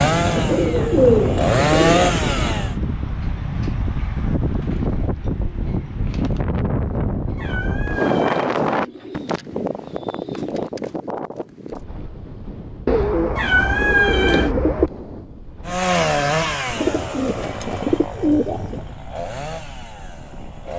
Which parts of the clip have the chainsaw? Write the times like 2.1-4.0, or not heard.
0.0-2.8, 15.7-20.7.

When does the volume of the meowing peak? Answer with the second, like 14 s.
14 s.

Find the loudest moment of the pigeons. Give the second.
1 s.